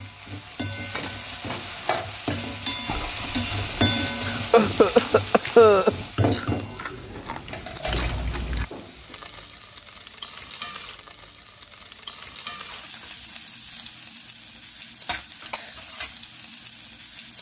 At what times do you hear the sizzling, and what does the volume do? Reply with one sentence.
The sizzling can be heard from 0.0 to 17.3 s, getting quieter.